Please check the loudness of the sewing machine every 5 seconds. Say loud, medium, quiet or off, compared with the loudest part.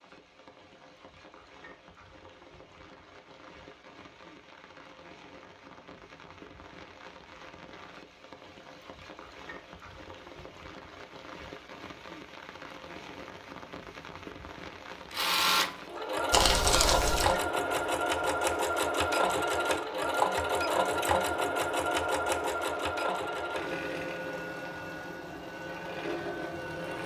off, off, off, loud, loud, medium.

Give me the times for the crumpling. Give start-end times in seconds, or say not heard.
16.3-17.4.